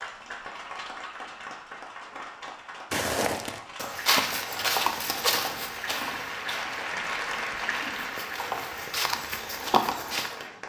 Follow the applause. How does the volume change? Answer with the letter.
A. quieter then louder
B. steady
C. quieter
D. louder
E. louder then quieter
E.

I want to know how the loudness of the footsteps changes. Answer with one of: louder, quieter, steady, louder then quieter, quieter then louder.
quieter then louder.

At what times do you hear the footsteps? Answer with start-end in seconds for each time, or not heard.
2.9-10.3.